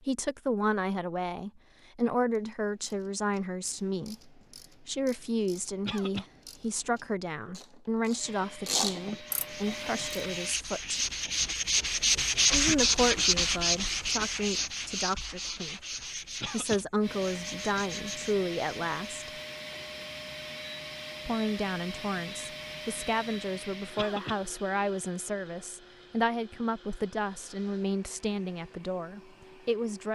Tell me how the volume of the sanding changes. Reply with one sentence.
The volume of the sanding goes up, then down.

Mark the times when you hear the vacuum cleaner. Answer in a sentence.
The vacuum cleaner can be heard from 8.2 to 10.6 s and from 17.0 to 30.1 s.